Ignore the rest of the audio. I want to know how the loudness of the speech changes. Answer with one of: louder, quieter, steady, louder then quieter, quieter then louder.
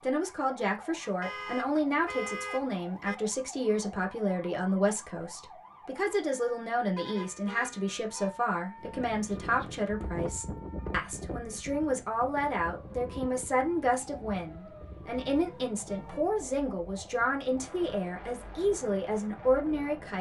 steady.